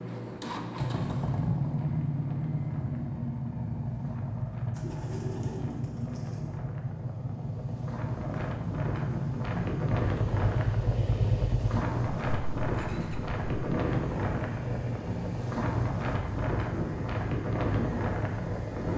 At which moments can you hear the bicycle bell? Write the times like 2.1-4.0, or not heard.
not heard.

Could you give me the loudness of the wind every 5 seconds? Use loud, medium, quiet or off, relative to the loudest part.
quiet, medium, loud, loud.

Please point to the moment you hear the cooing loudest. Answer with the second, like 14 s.
5 s.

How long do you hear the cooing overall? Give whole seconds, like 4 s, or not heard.
2 s.